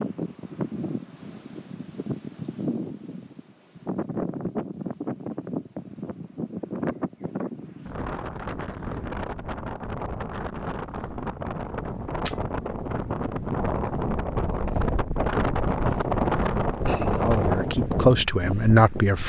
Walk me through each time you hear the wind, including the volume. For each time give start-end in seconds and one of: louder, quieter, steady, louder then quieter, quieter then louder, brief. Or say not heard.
0.0-19.2 louder.